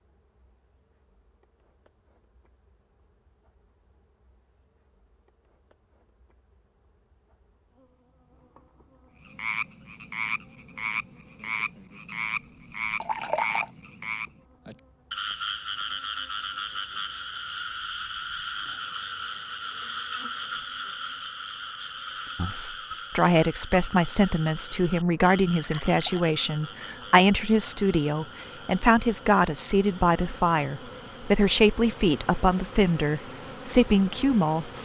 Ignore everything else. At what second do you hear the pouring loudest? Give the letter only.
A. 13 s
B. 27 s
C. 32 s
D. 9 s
A.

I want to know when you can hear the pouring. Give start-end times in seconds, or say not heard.
13.0-13.7, 25.5-26.2.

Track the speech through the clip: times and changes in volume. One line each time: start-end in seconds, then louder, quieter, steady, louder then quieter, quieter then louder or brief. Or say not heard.
22.4-34.8 steady.